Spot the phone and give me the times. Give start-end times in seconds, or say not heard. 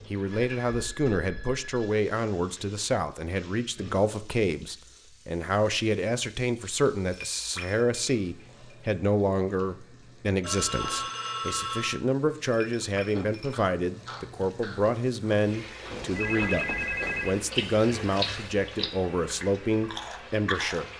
0.3-2.0, 10.4-12.0, 15.9-17.4.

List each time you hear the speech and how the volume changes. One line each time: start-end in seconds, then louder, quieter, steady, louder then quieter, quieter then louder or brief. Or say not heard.
0.1-20.9 steady.